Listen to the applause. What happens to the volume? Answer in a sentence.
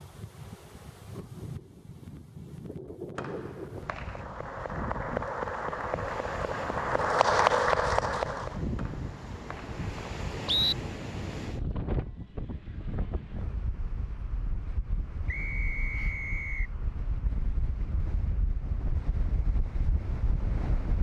The volume of the applause goes up.